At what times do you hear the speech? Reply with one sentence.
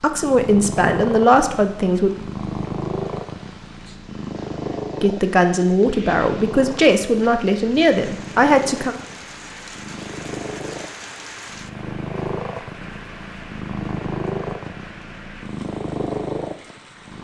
The speech can be heard from 0.0 to 2.1 s and from 5.0 to 8.9 s.